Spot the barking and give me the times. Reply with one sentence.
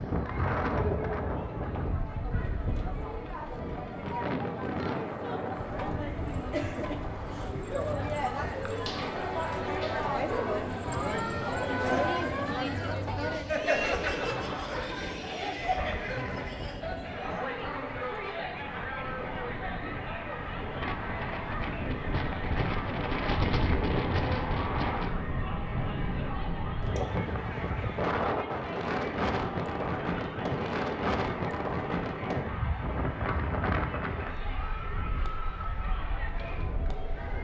The barking can be heard from 8.8 to 10.6 s.